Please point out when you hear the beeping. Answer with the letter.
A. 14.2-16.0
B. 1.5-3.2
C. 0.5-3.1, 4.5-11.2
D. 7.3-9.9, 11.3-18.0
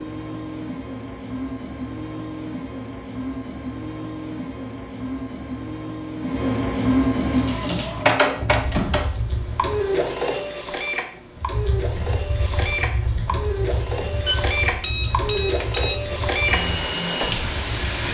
A.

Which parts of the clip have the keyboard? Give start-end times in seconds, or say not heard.
7.3-9.9, 11.3-18.0.